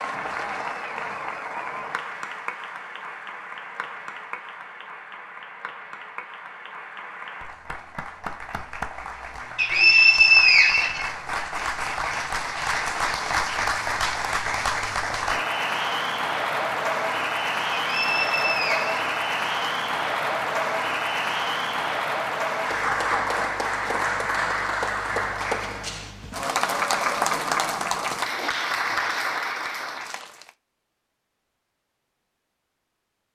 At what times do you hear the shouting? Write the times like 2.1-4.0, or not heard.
not heard.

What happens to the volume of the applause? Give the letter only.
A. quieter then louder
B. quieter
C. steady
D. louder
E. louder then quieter
D.